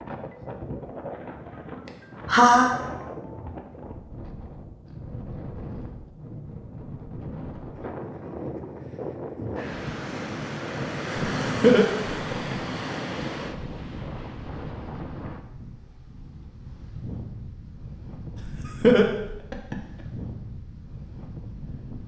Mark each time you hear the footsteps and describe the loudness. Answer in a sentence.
You can't hear the footsteps here.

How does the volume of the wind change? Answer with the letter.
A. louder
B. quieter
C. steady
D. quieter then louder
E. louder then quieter
E.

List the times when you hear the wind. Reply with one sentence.
You can hear the wind from 0.0 to 22.0 s.